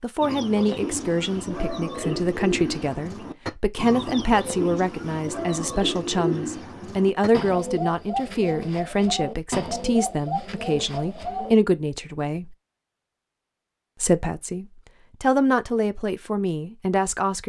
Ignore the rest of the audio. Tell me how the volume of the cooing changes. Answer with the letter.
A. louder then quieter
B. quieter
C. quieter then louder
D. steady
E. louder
D.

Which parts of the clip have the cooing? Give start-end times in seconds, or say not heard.
0.2-11.6.